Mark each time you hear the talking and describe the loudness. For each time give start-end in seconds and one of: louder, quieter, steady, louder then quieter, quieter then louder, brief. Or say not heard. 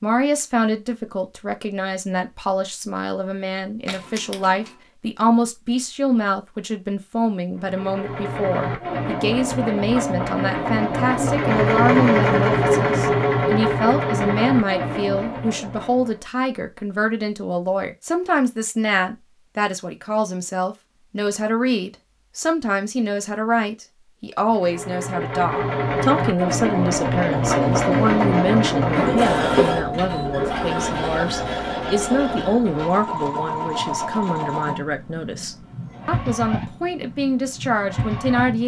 0.0-38.6 steady.